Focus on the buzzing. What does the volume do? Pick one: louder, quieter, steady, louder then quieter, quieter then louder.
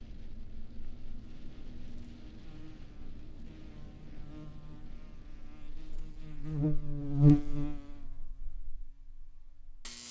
louder then quieter.